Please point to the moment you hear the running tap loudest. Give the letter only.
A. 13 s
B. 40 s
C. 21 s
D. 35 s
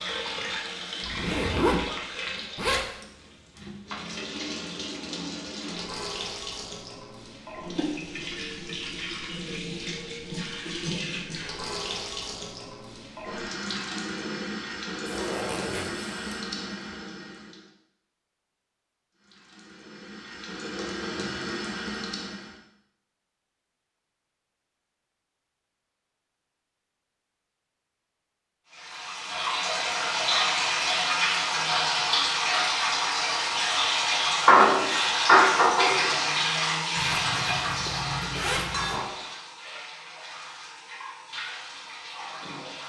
D.